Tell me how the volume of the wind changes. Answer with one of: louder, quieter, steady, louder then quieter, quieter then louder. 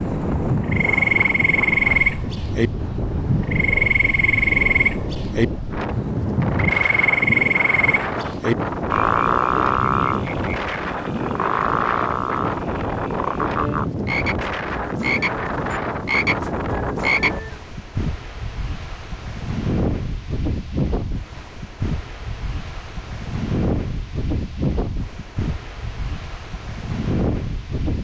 steady.